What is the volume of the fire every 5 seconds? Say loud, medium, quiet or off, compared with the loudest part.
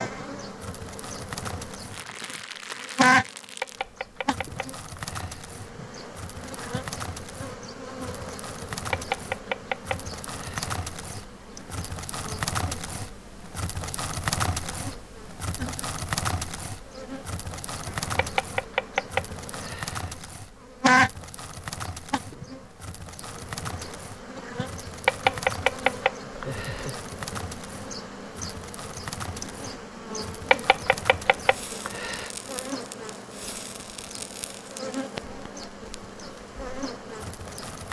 medium, medium, loud, loud, medium, medium, medium, medium.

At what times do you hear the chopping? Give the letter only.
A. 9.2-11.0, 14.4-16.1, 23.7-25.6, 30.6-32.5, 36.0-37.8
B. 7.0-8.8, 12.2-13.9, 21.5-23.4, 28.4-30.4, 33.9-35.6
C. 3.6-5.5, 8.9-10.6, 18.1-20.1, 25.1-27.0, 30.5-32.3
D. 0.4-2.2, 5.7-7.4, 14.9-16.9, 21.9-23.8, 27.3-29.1
C.